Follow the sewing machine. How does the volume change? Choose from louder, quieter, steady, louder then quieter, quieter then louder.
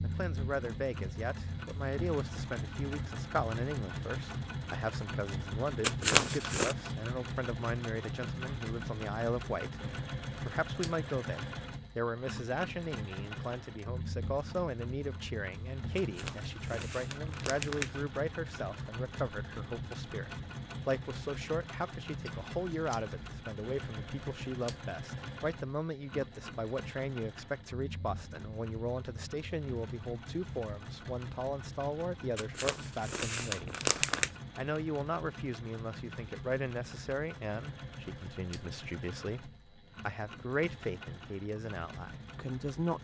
quieter.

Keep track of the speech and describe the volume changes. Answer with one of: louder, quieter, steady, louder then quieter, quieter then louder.
steady.